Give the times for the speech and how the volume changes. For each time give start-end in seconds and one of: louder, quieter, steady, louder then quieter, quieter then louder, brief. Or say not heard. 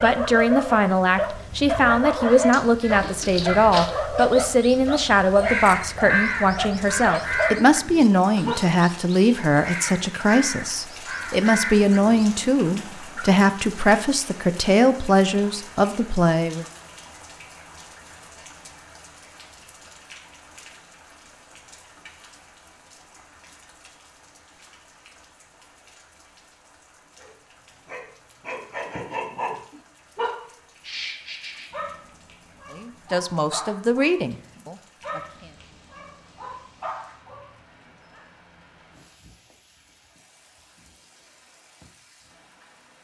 0.0-16.6 steady
32.7-35.5 brief.